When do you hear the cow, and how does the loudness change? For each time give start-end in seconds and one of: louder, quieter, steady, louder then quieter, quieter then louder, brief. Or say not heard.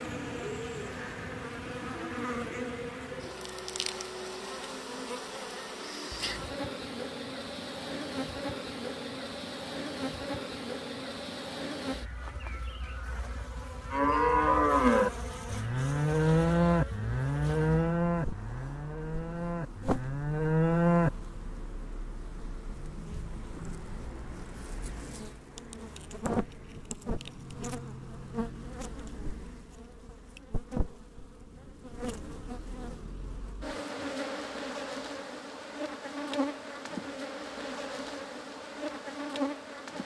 13.9-21.1 quieter then louder.